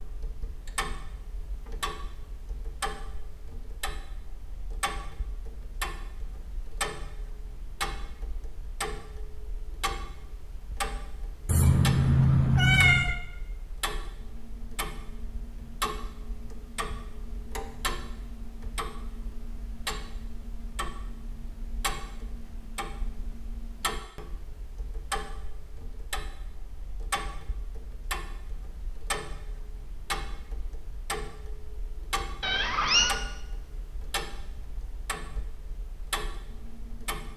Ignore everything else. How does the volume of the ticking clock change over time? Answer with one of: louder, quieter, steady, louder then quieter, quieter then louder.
steady.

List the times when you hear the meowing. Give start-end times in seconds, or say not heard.
11.4-13.2, 32.4-33.2.